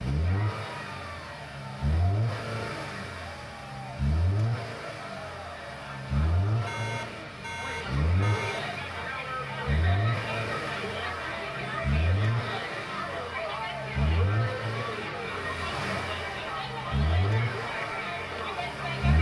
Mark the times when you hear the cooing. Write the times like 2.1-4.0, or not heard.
not heard.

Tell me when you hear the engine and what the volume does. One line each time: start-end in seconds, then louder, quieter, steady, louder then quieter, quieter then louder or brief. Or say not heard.
0.0-19.1 steady.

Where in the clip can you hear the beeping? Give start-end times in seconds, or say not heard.
6.6-8.7.